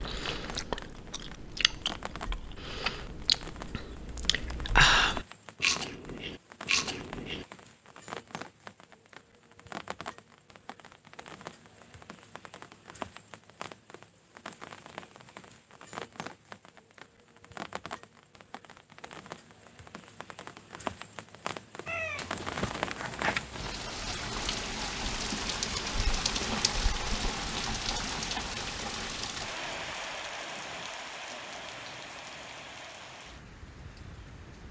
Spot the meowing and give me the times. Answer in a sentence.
The meowing can be heard from 21.9 to 23.8 s.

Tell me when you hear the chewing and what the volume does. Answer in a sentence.
You can hear the chewing from 0.0 to 7.5 s, getting louder then quieter.